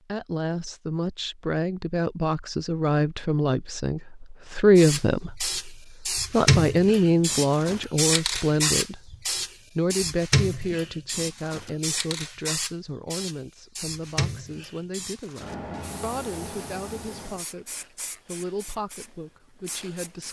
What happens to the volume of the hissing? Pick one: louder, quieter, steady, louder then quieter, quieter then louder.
quieter.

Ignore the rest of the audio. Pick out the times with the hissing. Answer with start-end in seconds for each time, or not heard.
4.8-20.2.